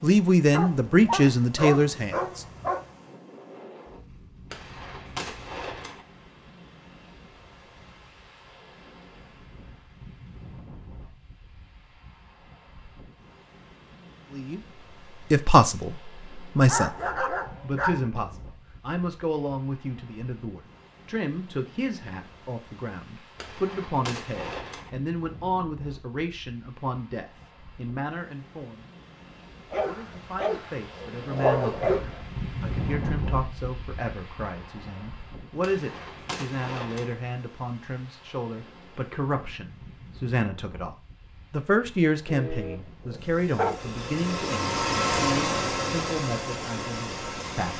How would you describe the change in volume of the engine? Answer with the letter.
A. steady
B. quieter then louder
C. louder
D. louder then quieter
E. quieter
D.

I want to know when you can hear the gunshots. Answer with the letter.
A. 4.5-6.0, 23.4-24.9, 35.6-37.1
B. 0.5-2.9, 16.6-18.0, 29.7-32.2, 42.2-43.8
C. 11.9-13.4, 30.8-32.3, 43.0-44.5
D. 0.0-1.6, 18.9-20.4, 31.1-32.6
A.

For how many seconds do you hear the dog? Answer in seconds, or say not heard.
8 s.